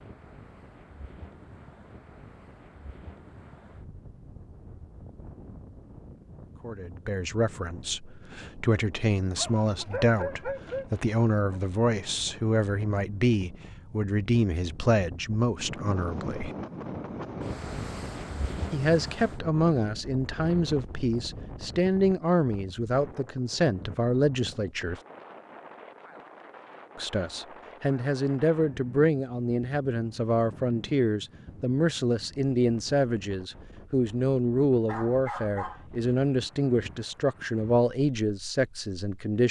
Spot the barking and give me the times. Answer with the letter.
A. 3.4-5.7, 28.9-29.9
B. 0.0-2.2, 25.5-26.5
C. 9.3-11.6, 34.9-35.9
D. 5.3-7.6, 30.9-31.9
C.